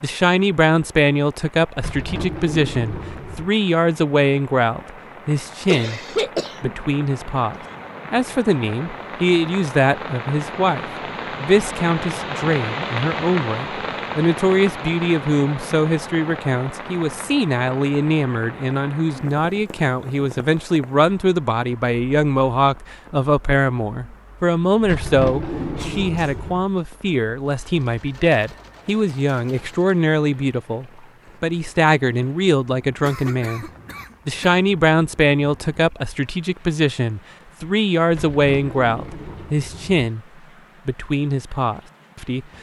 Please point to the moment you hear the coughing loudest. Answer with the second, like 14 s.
6 s.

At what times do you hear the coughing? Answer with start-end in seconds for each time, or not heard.
5.7-6.8, 25.8-26.4, 33.0-34.6.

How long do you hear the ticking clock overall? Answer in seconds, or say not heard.
not heard.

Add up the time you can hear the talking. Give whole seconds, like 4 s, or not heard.
41 s.